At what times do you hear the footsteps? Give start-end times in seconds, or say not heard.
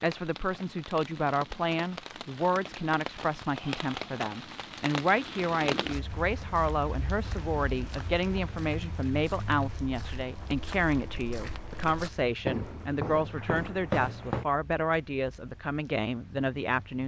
5.8-14.4.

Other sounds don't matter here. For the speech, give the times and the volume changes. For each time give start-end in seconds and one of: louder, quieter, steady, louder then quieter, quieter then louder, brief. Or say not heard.
0.0-17.0 steady.